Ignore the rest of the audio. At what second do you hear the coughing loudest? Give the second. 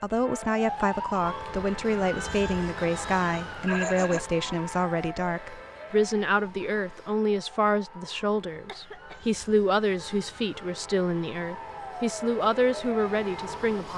4 s.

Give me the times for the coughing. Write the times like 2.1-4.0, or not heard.
3.6-4.2, 8.5-9.2.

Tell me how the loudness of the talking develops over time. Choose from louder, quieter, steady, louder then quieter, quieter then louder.
steady.